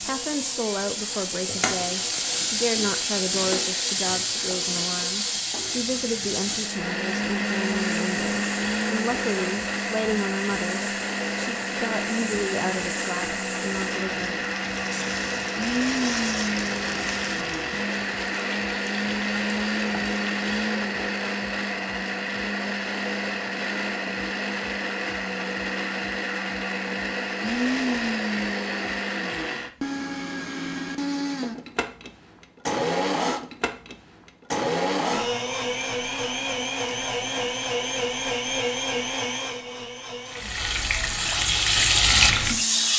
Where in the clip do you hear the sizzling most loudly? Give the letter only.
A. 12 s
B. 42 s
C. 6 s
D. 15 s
B.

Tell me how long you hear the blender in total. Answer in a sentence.
You can hear the blender for 43 seconds altogether.